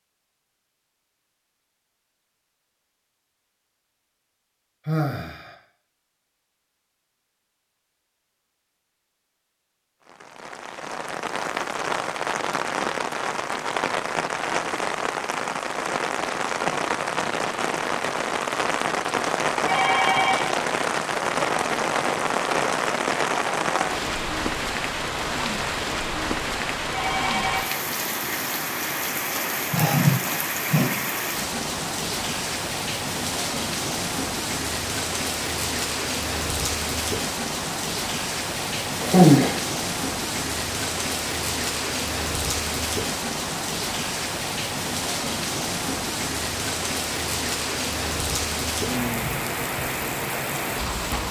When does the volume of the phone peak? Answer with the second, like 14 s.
20 s.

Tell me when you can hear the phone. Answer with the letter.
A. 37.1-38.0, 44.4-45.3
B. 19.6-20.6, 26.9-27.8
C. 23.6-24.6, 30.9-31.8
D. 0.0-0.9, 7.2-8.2
B.